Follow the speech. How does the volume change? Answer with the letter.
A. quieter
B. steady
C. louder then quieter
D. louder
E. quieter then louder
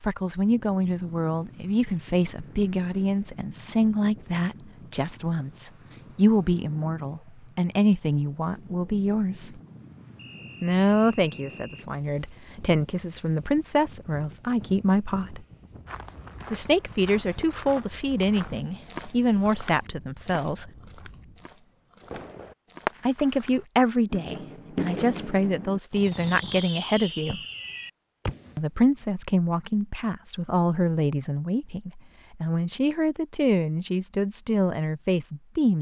B.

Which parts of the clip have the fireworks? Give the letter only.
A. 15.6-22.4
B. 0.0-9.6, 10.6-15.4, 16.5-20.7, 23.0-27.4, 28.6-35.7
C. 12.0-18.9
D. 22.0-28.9
D.